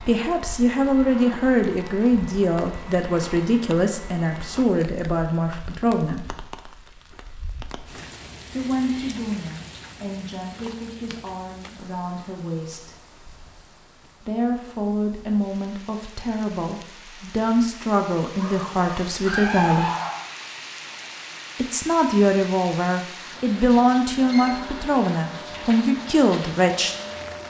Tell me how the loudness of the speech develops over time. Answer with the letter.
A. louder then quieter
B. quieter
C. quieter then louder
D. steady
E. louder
C.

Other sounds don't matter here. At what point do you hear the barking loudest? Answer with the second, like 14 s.
20 s.